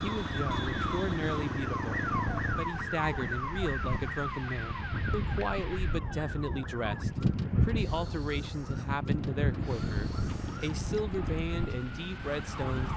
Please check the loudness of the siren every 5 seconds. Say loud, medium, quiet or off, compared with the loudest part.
loud, medium, medium.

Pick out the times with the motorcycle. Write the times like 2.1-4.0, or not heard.
0.0-2.6, 9.1-11.4.